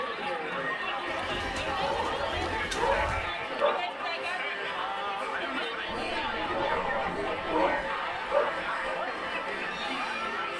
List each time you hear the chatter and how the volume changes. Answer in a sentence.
You can hear the chatter from 0.0 to 10.5 s, at a steady volume.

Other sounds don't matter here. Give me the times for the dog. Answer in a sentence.
You can hear the dog from 1.8 to 3.8 s and from 6.5 to 8.5 s.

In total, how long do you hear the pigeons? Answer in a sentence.
You can hear the pigeons for 4 seconds altogether.